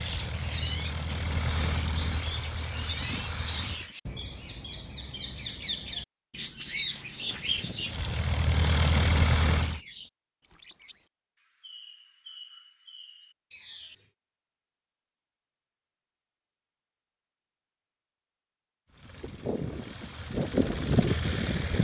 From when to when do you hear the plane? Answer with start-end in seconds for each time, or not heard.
0.0-4.0, 7.2-9.8, 18.9-21.7.